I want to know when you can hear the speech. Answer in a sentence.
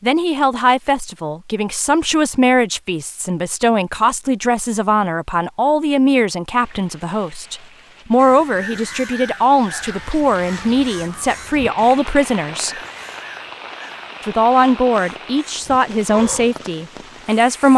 The speech can be heard from 0.0 to 12.8 s and from 14.2 to 17.7 s.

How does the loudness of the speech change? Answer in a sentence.
The volume of the speech stays about the same.